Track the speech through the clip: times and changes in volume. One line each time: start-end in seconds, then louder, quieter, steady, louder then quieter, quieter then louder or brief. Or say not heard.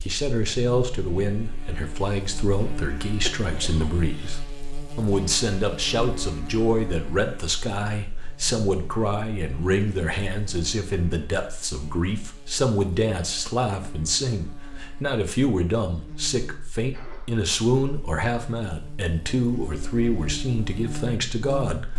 0.1-21.9 steady.